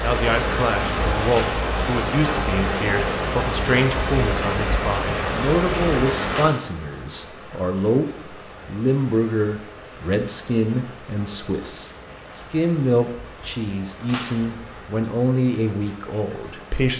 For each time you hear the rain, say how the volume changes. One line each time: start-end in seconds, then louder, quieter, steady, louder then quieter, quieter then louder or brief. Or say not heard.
0.0-16.9 quieter.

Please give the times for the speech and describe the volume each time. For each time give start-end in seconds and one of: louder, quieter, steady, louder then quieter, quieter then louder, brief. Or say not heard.
0.0-16.9 steady.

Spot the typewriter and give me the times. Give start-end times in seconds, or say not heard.
not heard.